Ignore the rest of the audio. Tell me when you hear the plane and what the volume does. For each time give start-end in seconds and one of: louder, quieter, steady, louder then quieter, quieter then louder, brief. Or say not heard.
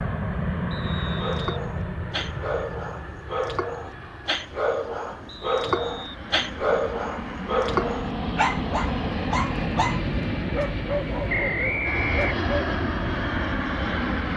0.0-14.3 quieter then louder.